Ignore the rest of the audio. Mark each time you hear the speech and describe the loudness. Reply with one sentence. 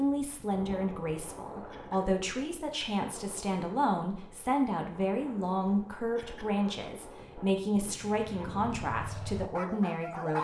You can hear the speech from 0.0 to 10.3 s, at a steady volume.